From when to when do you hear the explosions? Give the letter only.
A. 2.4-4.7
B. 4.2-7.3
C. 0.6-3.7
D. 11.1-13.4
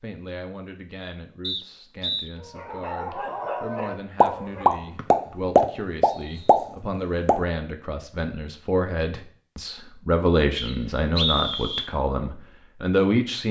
B.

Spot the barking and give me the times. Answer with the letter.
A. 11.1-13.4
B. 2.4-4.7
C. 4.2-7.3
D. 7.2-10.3
B.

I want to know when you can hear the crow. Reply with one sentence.
The crow can't be heard in this clip.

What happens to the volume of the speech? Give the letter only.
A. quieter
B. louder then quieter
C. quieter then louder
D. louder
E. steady
D.